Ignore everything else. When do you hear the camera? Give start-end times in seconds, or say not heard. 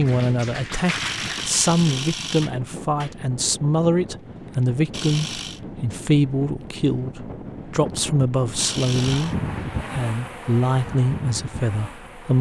0.9-2.5, 4.9-5.6, 8.6-9.3.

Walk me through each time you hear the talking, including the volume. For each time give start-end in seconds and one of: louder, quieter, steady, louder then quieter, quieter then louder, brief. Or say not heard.
0.0-12.3 steady.